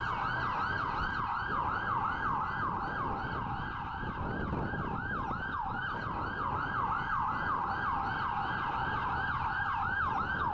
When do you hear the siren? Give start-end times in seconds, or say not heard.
0.0-10.4.